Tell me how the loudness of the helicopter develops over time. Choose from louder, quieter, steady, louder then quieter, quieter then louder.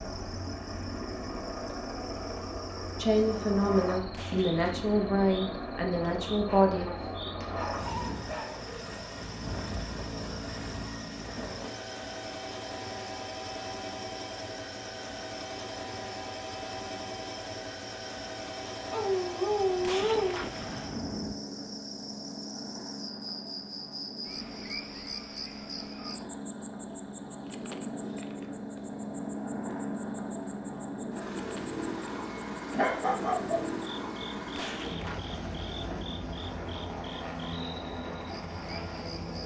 steady.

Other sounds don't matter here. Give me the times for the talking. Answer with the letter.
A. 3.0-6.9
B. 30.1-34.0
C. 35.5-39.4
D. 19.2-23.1
A.